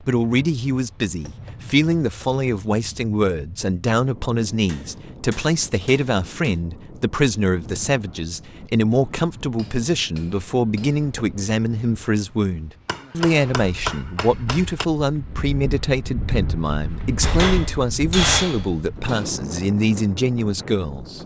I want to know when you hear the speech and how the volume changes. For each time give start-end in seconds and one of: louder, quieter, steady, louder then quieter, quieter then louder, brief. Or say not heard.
0.0-21.2 steady.